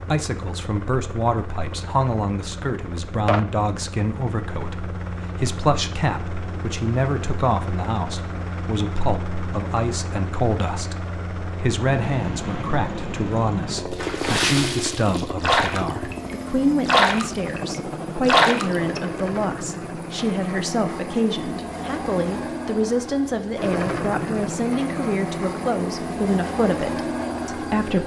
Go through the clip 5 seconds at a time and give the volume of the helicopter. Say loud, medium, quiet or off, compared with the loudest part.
medium, medium, loud, loud, loud, loud.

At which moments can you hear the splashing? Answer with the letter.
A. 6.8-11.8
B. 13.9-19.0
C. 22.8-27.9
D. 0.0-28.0
B.